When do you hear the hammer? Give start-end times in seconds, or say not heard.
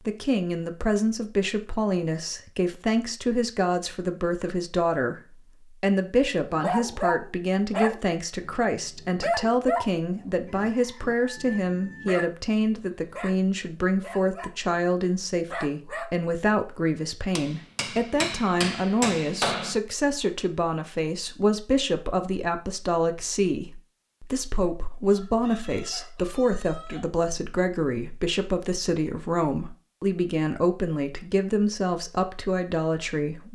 17.4-19.8.